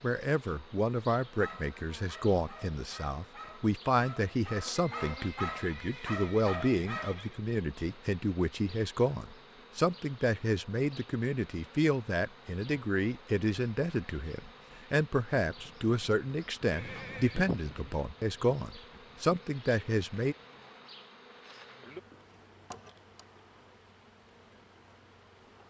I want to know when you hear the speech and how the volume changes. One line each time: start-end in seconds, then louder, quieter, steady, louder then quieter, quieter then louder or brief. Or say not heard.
0.0-20.4 steady.